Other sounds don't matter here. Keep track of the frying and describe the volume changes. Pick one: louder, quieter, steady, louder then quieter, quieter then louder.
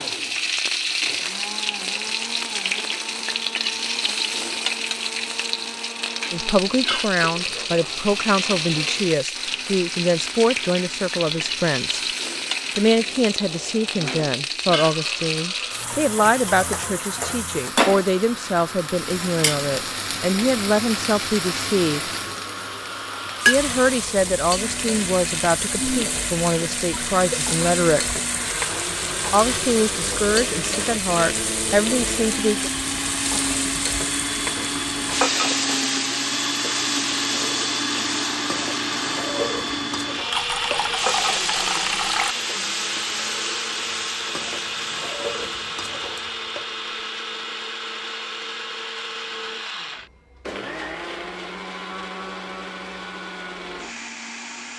steady.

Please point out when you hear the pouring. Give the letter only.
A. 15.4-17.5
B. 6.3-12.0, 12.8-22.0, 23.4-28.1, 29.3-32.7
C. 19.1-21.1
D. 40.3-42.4
D.